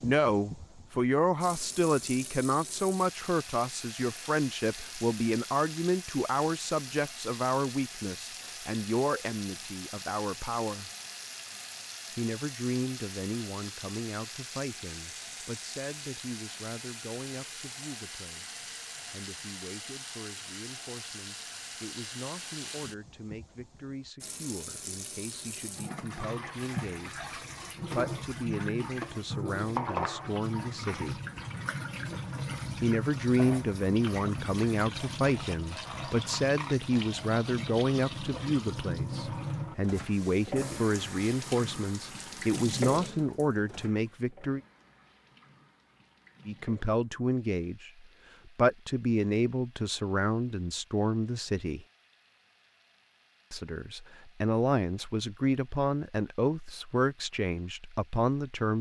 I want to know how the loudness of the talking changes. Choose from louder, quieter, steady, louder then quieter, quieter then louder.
quieter then louder.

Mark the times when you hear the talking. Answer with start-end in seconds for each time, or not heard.
0.0-10.9, 12.2-31.2, 32.8-44.6, 46.5-51.9, 53.5-58.7.